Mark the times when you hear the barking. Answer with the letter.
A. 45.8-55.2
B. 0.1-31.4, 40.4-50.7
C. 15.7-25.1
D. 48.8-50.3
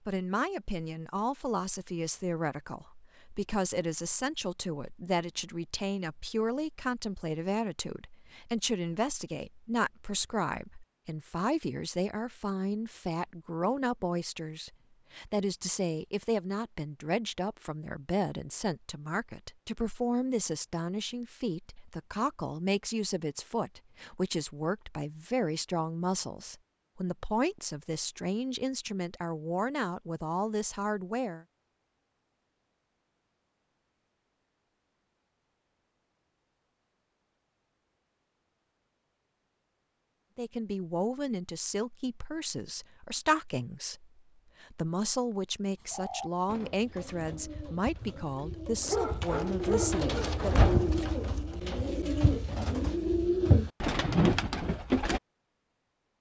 D.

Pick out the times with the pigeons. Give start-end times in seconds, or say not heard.
45.8-55.2.